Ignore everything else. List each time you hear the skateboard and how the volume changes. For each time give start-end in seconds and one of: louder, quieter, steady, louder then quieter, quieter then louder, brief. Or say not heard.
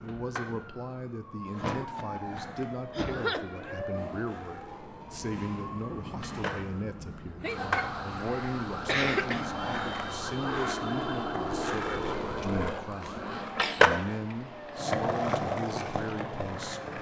0.0-16.9 louder.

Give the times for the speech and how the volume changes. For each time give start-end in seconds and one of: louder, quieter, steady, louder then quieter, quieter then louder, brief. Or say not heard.
0.0-16.9 steady.